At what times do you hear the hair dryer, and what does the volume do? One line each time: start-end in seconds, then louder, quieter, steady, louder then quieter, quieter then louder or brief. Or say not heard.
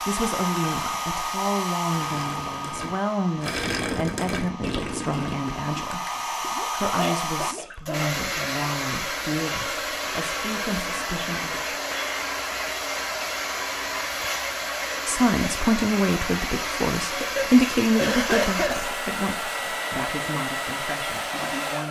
0.0-21.8 steady.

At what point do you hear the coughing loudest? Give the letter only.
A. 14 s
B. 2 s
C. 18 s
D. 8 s
C.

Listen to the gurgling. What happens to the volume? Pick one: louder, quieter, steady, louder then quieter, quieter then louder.
louder then quieter.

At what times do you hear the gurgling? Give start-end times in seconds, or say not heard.
0.2-7.8.